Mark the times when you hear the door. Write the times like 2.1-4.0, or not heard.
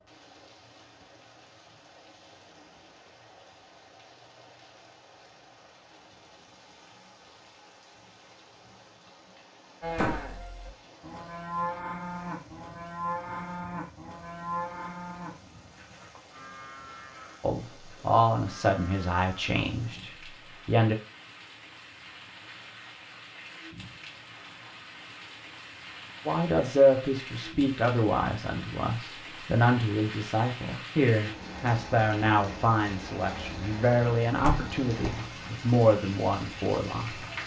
9.9-10.3, 34.4-35.2.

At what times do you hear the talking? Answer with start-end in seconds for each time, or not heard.
17.4-20.9, 26.2-37.2.